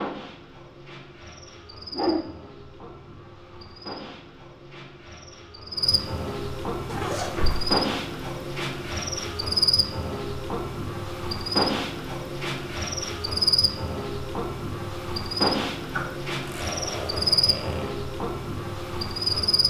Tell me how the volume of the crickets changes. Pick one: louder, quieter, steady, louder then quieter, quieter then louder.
louder.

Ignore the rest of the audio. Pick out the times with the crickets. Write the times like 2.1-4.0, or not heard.
0.0-19.6.